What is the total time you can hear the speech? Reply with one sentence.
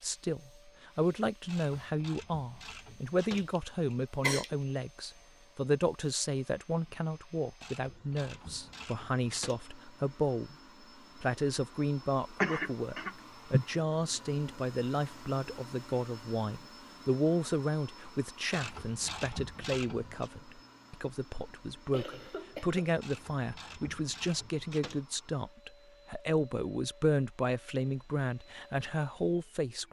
The speech can be heard for 29 seconds in total.